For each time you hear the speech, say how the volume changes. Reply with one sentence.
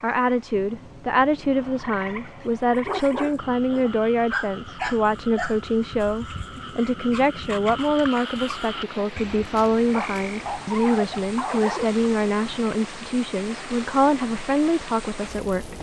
You can hear the speech from 0.0 to 15.7 s, at a steady volume.